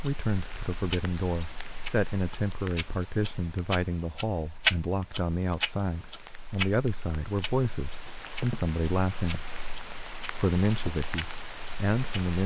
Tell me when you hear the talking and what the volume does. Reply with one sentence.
You can hear the talking from 0.0 to 9.4 s, at a steady volume; and briefly from 10.3 to 12.4 s.